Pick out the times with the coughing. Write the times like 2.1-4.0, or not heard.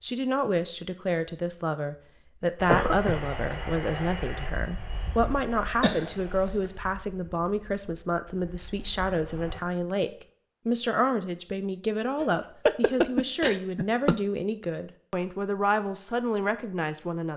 2.6-3.4, 5.8-6.7, 12.2-14.2.